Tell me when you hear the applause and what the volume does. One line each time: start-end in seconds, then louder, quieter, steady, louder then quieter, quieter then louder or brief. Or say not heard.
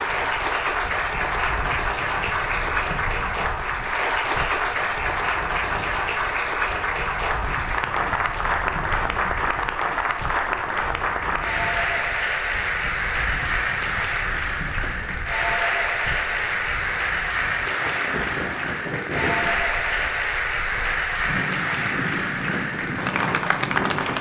0.0-24.1 steady.